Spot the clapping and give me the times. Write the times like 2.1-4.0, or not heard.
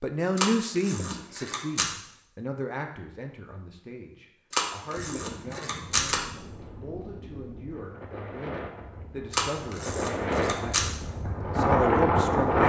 not heard.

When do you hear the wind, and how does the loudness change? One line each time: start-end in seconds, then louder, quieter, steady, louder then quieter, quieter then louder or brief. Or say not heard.
4.8-12.6 louder.